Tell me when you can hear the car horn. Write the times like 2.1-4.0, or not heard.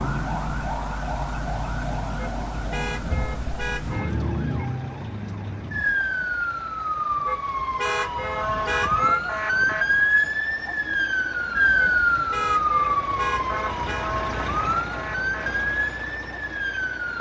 2.1-4.2, 7.2-9.2, 11.8-14.1.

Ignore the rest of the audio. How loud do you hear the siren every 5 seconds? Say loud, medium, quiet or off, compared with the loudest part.
medium, loud, loud, medium.